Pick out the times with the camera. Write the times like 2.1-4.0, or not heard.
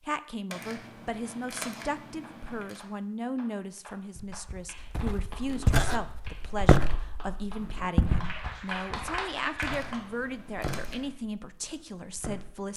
0.5-2.9, 9.6-11.1.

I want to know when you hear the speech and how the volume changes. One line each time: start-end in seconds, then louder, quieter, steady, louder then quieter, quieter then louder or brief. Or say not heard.
0.0-12.7 steady.